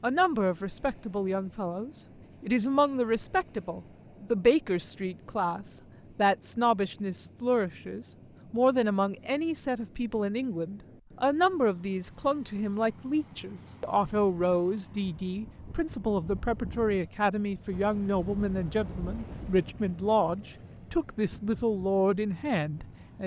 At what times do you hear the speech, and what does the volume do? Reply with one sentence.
You can hear the speech from 0.0 to 23.2 s, at a steady volume.